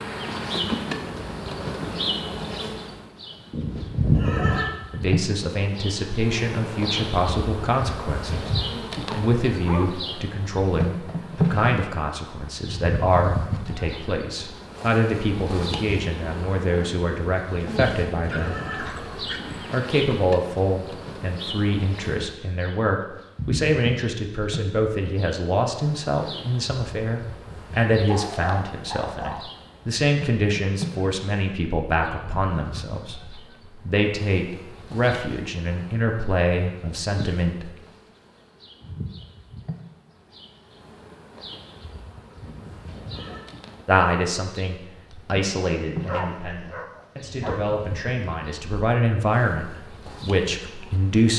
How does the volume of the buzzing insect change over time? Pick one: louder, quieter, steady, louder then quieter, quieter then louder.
quieter.